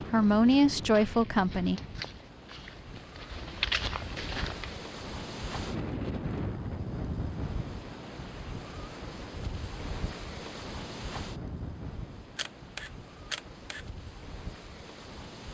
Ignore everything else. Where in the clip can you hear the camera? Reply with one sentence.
You can hear the camera from 12.3 to 13.8 s.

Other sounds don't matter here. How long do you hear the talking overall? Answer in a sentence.
You can hear the talking for 2 seconds altogether.